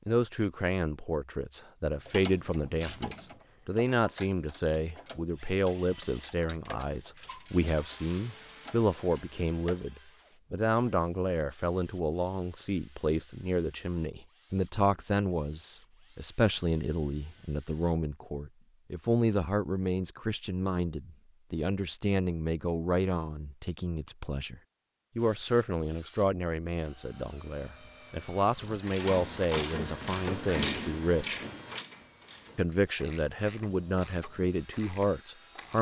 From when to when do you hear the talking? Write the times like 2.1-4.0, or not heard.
0.1-31.4, 32.5-35.7.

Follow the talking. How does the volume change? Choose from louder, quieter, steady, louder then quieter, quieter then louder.
steady.